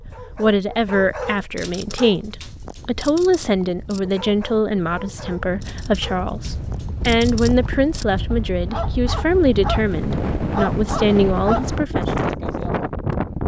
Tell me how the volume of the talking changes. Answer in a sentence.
The volume of the talking stays about the same.